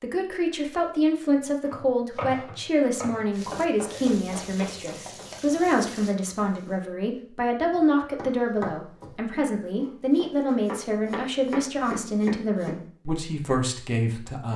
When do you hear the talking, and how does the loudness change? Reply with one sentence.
You can hear the talking from 0.0 to 14.5 s, at a steady volume.